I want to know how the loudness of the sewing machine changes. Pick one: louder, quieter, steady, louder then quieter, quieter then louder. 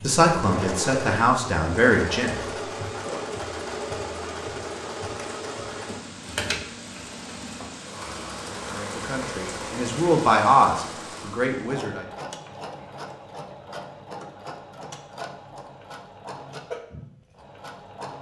quieter.